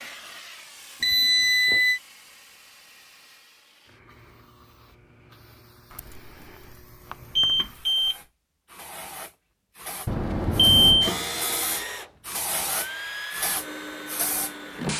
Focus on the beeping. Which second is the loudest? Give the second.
11 s.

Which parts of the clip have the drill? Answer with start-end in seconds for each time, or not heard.
11.0-14.9.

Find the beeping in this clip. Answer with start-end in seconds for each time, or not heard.
1.0-2.0, 5.9-8.2, 10.1-11.2.